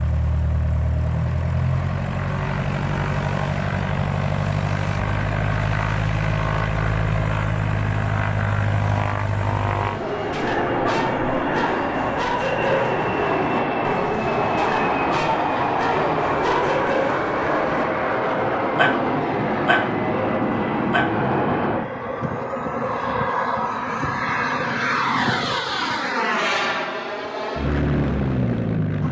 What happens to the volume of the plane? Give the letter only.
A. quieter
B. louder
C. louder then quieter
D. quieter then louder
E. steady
E.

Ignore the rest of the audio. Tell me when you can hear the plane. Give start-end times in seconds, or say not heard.
0.0-29.0.